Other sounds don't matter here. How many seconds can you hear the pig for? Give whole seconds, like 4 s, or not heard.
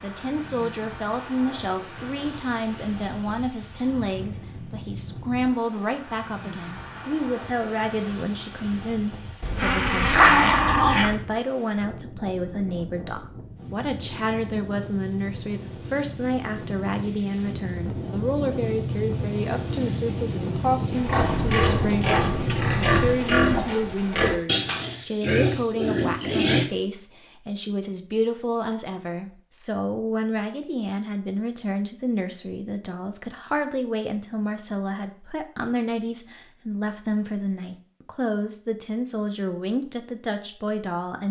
6 s.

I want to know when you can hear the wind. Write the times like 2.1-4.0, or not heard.
0.0-23.4.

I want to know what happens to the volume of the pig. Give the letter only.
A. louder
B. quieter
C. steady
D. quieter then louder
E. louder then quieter
C.